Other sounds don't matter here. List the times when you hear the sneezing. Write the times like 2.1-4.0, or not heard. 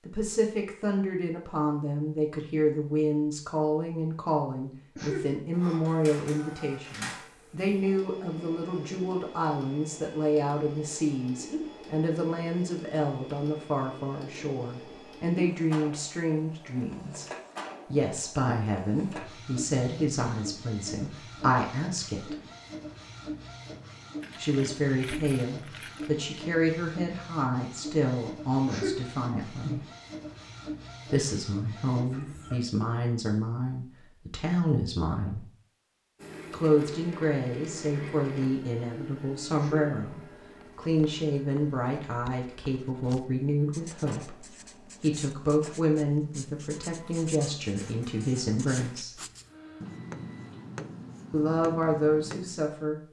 5.0-5.4, 28.6-29.1, 39.5-40.0.